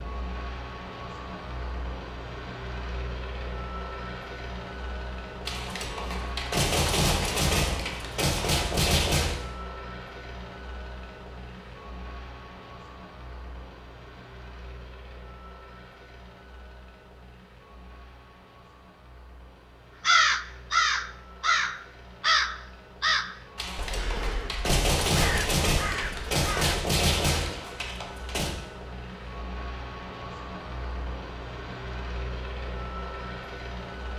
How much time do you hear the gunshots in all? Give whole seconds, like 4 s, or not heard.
9 s.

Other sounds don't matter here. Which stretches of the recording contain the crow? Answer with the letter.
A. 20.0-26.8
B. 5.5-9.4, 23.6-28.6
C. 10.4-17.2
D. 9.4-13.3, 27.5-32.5
A.